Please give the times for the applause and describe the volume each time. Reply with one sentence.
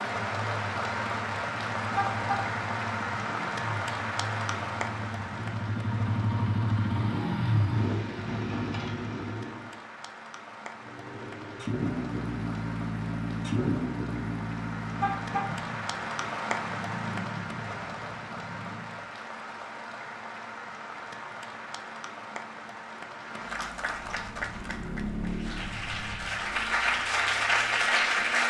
You can hear the applause from 0.0 to 28.4 s, getting quieter then louder.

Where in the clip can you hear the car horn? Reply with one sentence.
You can hear the car horn from 1.9 to 2.5 s and from 14.9 to 15.6 s.